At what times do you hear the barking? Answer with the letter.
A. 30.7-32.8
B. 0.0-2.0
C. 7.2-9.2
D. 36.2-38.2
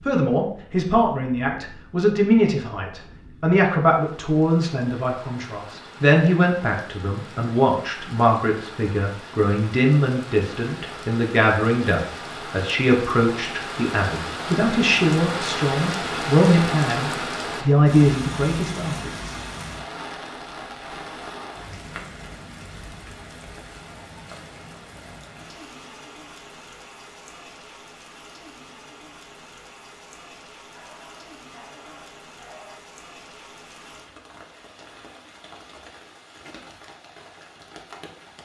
A.